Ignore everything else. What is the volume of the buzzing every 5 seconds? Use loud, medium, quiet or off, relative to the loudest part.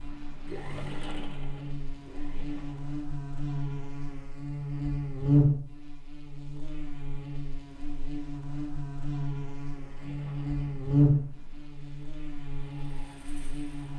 medium, loud, loud.